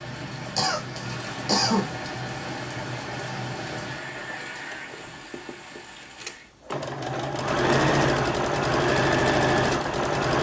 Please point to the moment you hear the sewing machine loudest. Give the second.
9 s.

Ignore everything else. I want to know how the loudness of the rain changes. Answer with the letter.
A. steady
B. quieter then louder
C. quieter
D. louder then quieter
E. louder
C.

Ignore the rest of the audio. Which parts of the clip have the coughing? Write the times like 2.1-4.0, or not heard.
0.6-1.9.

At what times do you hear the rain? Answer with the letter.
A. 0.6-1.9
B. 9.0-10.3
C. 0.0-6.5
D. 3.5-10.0
C.